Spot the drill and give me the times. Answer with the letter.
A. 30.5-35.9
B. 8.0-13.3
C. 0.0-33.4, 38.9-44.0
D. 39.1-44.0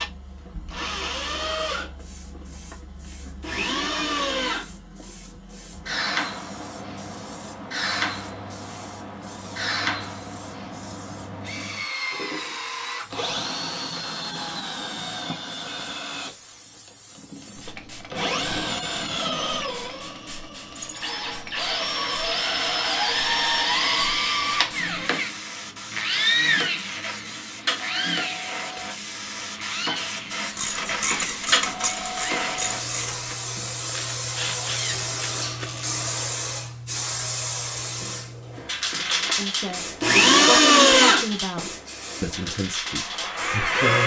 C.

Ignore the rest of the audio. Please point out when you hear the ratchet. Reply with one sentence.
You can hear the ratchet from 30.5 to 35.9 s.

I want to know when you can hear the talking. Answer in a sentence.
You can hear the talking from 39.1 to 44.0 s.